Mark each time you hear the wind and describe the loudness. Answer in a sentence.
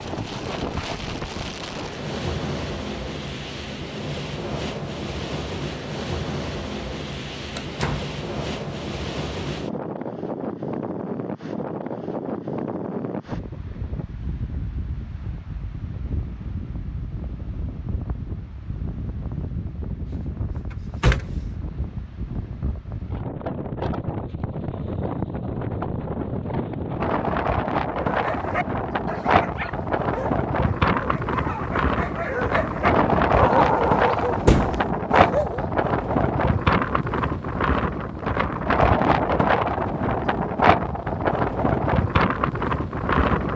You can hear the wind from 0.0 to 43.5 s, getting louder.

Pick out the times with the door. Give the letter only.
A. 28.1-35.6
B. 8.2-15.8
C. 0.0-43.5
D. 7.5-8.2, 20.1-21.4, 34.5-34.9
D.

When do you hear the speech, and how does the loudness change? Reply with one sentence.
The speech can't be heard in this clip.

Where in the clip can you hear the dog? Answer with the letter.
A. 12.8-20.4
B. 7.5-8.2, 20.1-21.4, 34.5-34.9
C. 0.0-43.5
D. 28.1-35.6
D.